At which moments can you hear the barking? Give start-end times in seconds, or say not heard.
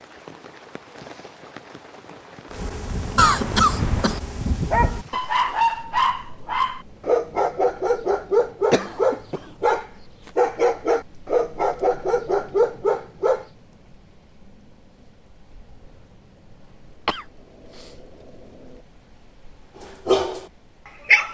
2.5-13.4, 19.8-21.3.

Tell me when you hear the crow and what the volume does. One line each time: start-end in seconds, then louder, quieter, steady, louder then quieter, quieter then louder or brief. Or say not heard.
not heard.